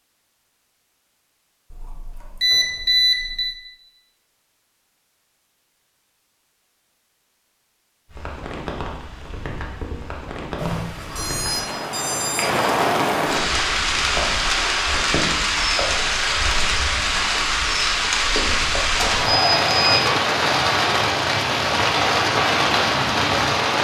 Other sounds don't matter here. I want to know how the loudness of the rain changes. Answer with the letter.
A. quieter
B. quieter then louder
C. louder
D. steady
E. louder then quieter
C.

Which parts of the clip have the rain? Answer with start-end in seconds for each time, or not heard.
8.1-23.7.